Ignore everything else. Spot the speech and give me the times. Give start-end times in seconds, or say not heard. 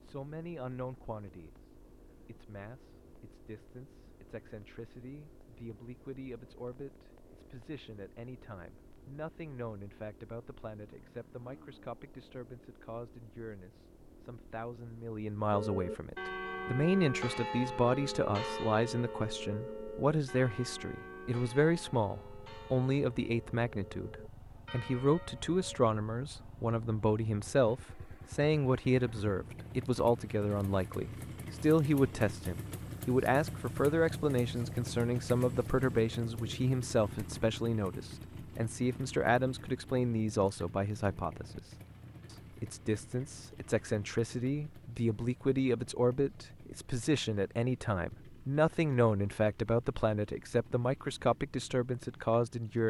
0.0-1.6, 2.2-41.6, 42.3-52.8.